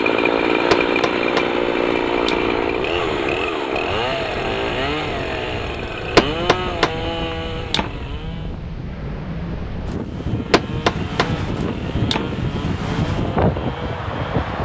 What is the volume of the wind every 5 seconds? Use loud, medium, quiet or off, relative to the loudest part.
quiet, medium, loud.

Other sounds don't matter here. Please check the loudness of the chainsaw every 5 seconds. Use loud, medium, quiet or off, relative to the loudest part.
loud, medium, quiet.